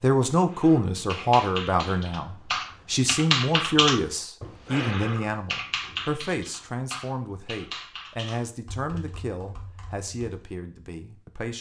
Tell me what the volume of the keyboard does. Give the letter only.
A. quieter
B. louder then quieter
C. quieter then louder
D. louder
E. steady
B.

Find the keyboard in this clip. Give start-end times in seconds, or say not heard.
0.5-10.4.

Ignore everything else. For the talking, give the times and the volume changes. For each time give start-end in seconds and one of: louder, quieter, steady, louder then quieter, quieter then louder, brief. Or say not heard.
0.0-11.5 quieter.